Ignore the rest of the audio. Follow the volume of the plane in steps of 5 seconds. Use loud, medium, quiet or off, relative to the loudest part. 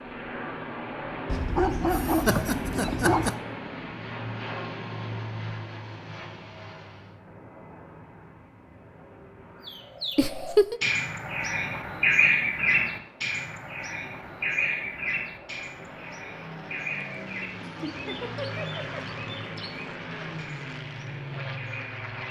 loud, medium, quiet, loud, loud.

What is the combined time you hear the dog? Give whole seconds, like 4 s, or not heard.
2 s.